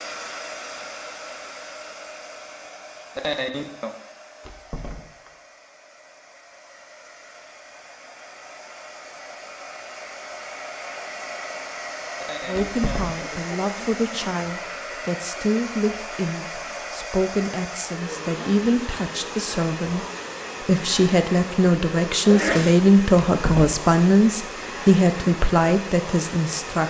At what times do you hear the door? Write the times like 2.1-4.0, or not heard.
4.4-5.3, 12.5-13.4, 23.2-23.8.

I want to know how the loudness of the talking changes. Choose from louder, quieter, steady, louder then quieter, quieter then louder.
louder.